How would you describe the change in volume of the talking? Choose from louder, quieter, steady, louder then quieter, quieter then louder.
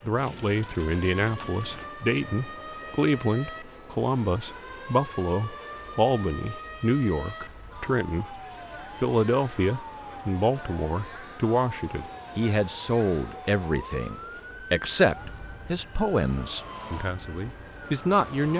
steady.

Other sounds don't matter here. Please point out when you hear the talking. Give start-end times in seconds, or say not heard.
0.0-8.4, 9.0-18.5.